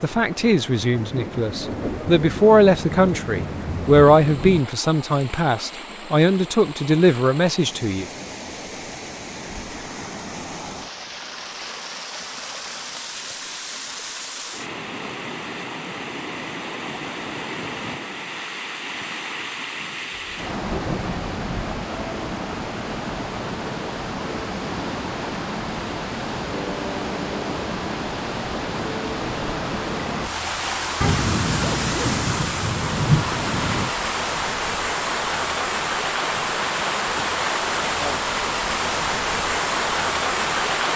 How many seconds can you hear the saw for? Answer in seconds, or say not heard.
not heard.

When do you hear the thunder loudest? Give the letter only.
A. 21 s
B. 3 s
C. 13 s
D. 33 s
D.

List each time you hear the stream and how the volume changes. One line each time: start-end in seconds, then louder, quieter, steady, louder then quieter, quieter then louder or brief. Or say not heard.
0.0-40.9 louder.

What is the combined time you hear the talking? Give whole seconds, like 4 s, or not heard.
8 s.